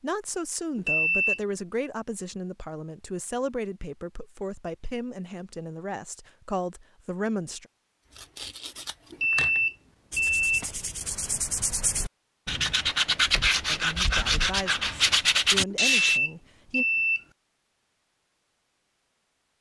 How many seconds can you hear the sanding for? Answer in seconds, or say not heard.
8 s.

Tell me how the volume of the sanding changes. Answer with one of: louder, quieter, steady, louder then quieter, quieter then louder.
louder.